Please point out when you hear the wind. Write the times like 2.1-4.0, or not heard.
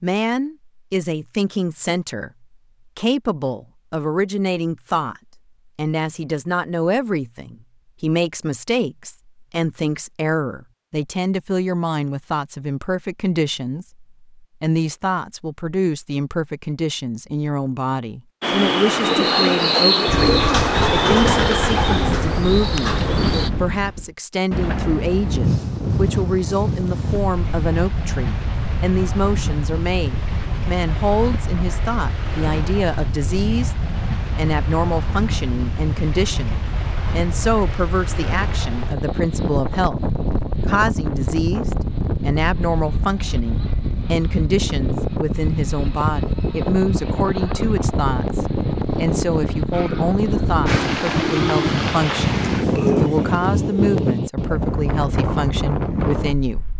20.1-56.7.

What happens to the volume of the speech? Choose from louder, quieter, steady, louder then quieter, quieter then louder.
steady.